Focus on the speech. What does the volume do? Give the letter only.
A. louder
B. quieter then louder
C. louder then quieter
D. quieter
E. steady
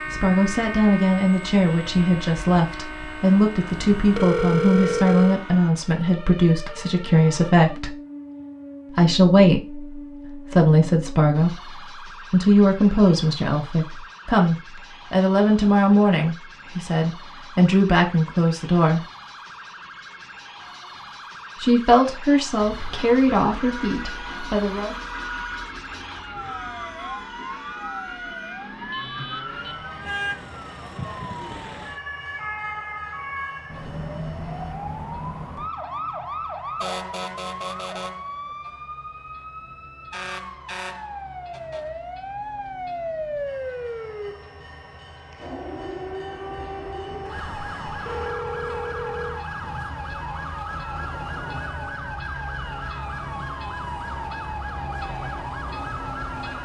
E.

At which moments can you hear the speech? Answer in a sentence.
You can hear the speech from 0.1 to 8.0 s, from 8.9 to 19.1 s and from 21.6 to 24.9 s.